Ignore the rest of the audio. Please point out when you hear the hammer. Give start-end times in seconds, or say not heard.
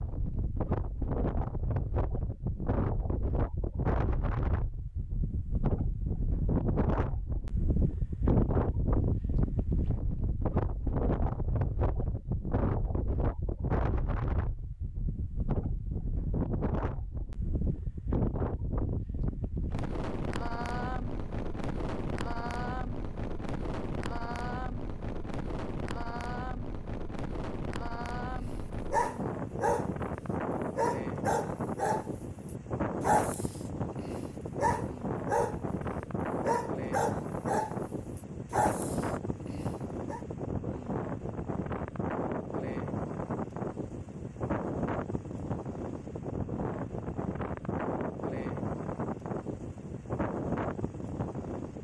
not heard.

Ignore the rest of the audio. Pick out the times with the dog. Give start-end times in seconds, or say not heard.
28.9-29.9, 30.8-32.1, 33.0-35.6, 36.4-40.2.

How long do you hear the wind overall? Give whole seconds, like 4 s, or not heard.
52 s.